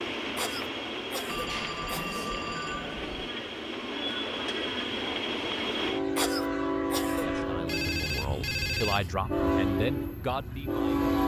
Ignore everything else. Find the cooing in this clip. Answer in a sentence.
The cooing can't be heard in this clip.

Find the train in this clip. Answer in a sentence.
The train can be heard from 0.0 to 11.2 s.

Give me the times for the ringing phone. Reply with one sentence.
You can hear the ringing phone from 1.2 to 3.3 s and from 7.7 to 9.2 s.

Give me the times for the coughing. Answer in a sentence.
The coughing can be heard from 0.3 to 2.2 s and from 6.2 to 7.2 s.